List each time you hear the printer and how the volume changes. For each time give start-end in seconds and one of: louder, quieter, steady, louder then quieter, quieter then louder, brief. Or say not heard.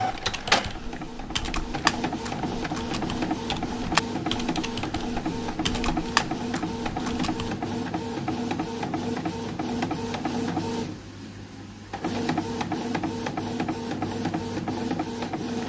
0.0-15.6 steady.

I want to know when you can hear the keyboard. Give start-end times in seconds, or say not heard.
0.1-7.5.